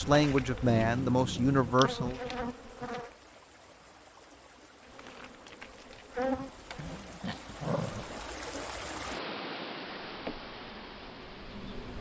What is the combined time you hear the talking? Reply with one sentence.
The talking can be heard for 2 seconds in total.